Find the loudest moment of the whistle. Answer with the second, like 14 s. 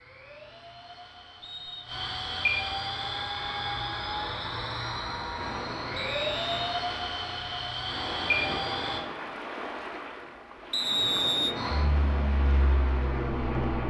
11 s.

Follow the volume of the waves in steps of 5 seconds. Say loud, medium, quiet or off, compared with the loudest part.
off, loud, loud.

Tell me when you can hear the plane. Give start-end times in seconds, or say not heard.
0.0-9.0, 11.6-13.8.